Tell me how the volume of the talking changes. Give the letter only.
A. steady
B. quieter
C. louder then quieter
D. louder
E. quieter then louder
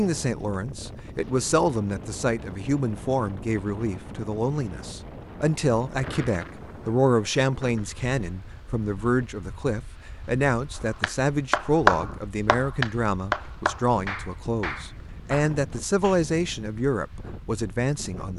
A.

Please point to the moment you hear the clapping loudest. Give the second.
12 s.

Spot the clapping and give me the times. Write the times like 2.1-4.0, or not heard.
11.0-16.2.